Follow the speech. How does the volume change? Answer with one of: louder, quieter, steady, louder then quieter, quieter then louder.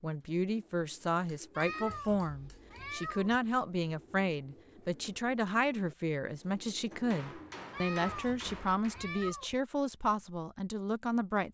steady.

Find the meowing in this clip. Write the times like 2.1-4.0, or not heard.
1.6-3.3, 7.7-9.6.